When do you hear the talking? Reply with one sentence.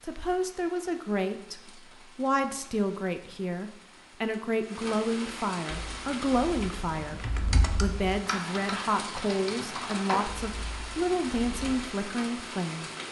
You can hear the talking from 0.0 to 13.0 s.